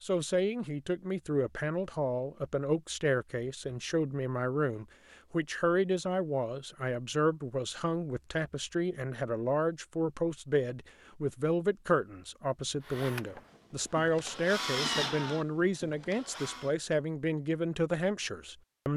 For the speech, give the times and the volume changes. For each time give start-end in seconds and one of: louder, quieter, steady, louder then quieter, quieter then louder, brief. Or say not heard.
0.0-18.9 steady.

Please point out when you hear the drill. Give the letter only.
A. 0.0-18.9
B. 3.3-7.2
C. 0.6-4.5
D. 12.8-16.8
D.